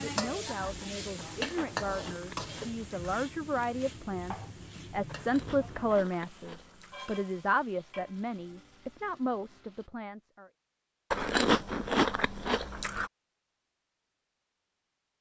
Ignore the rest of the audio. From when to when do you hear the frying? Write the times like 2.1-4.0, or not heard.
0.0-9.9.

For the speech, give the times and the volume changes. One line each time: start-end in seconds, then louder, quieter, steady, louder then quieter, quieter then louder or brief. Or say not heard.
0.0-10.5 louder then quieter.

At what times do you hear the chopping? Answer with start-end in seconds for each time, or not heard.
not heard.